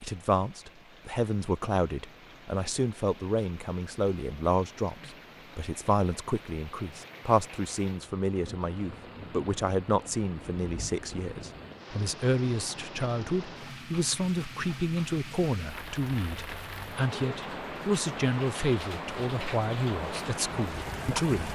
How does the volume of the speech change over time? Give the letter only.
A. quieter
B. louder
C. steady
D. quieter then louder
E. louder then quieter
C.